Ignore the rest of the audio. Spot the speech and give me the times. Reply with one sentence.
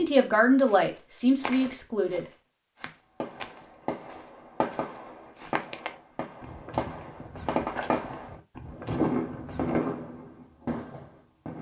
The speech can be heard from 0.0 to 2.2 s.